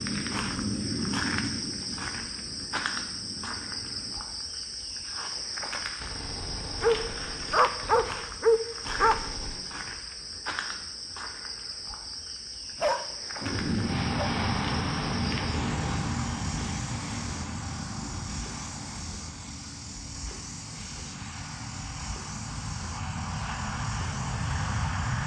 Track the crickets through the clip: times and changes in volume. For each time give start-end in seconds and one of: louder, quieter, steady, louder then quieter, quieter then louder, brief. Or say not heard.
0.0-25.2 quieter.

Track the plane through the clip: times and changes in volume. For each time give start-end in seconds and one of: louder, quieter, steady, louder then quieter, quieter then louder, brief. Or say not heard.
0.0-4.2 quieter
13.4-25.2 quieter then louder.